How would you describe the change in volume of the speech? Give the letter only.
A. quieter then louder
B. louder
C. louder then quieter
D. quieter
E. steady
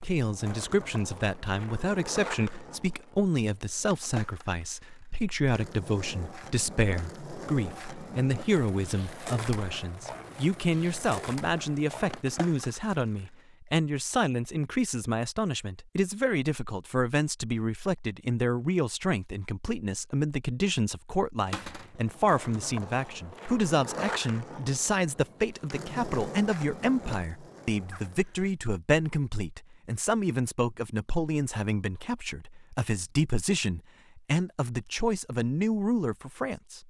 E.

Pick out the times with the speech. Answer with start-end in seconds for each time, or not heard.
0.0-36.8.